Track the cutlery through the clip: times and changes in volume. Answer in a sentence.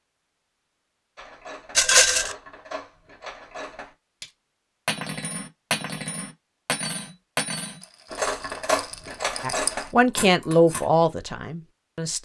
The cutlery can be heard from 1.1 to 10.8 s, getting louder.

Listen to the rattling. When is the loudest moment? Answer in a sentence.
The loudest moment of the rattling is at 2 seconds.